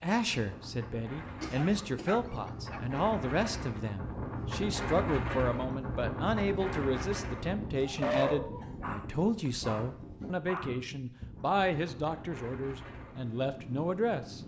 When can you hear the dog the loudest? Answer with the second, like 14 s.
8 s.